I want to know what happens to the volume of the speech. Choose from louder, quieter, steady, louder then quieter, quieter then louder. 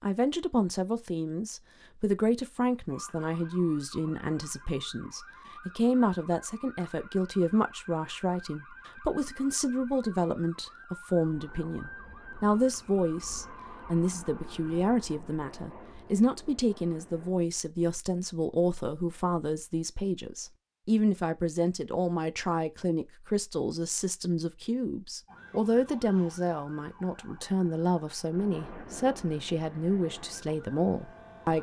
steady.